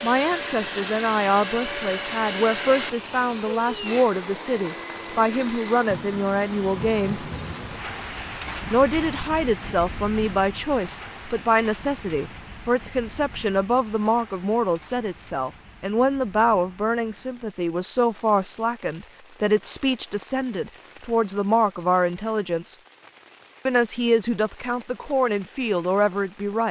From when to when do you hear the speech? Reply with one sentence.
You can hear the speech from 0.0 to 7.2 s, from 8.7 to 22.8 s and from 23.6 to 26.6 s.